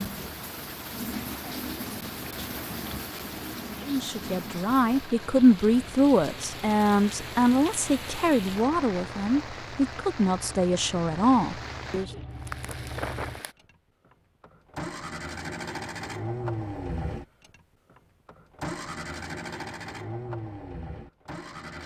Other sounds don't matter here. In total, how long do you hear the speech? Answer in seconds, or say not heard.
8 s.